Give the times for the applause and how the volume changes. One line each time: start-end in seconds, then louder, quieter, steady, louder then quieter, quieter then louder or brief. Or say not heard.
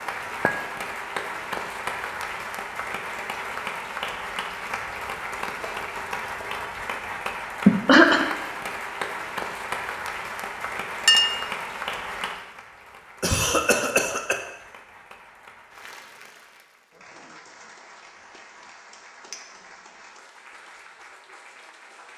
0.0-22.1 quieter.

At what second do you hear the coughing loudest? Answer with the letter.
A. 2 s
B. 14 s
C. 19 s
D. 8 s
D.